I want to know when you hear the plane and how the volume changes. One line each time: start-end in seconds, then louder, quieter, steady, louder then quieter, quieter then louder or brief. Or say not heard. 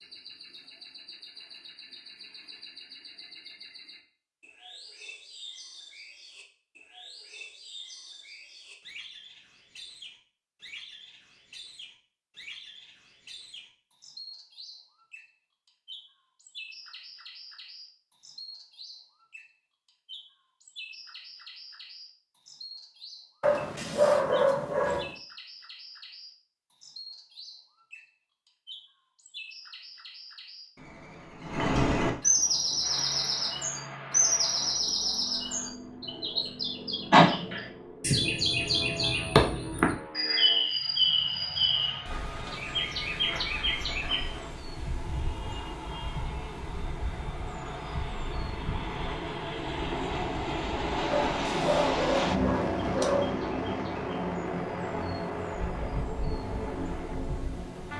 32.2-57.9 louder.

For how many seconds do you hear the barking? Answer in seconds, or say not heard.
4 s.